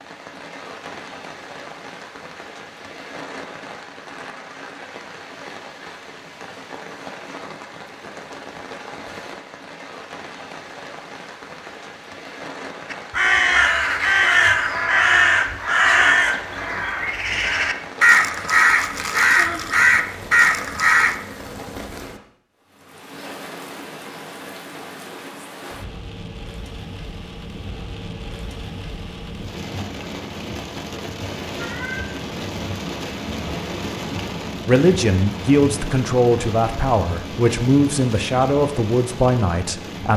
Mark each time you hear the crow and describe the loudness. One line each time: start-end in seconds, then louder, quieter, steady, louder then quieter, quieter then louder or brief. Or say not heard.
12.9-21.1 quieter then louder.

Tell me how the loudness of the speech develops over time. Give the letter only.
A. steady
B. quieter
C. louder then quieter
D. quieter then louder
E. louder
A.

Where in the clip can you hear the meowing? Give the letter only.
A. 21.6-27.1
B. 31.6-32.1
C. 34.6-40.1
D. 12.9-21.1
B.